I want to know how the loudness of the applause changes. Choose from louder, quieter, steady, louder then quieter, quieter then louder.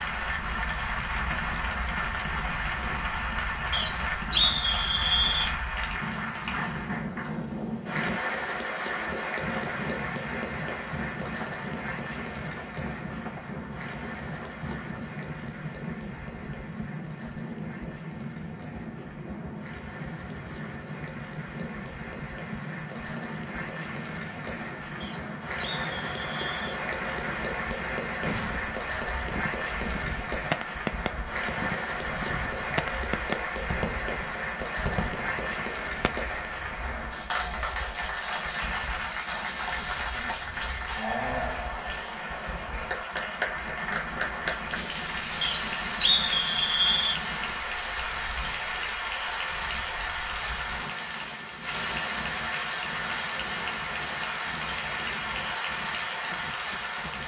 quieter then louder.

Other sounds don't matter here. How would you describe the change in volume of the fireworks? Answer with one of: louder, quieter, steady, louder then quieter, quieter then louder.
louder then quieter.